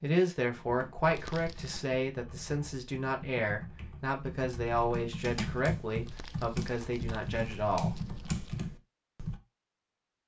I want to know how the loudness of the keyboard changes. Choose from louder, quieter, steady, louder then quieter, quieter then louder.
louder.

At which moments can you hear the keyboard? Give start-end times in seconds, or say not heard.
0.5-9.4.